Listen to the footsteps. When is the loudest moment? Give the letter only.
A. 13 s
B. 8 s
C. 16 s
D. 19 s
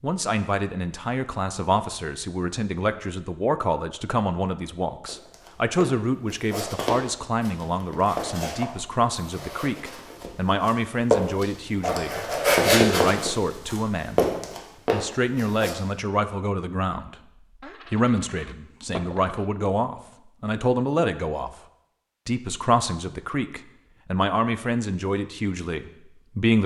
A.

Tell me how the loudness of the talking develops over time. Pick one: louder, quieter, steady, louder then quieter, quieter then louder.
steady.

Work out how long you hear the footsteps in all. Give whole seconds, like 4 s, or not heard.
11 s.